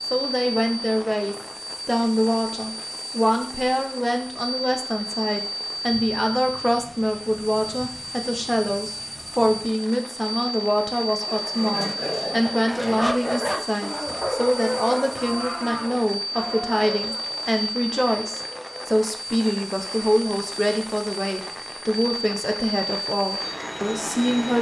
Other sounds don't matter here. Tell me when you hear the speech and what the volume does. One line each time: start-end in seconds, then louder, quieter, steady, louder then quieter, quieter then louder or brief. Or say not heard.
0.0-24.5 steady.